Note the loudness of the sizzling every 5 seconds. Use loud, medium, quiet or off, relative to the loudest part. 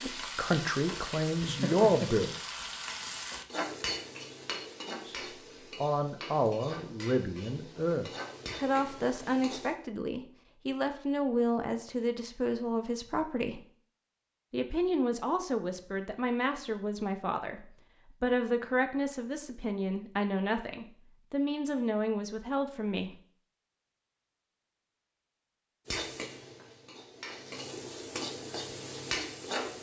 loud, medium, off, off, off, loud.